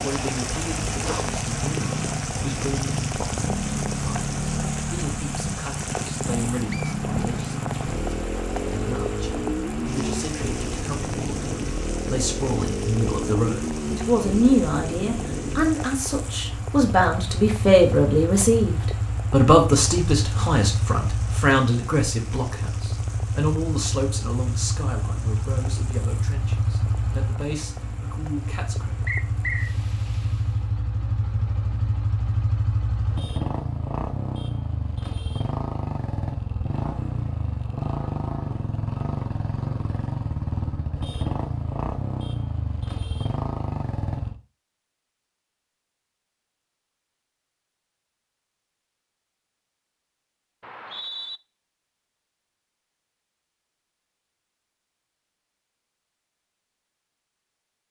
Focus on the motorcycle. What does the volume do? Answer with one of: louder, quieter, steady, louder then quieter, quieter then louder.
steady.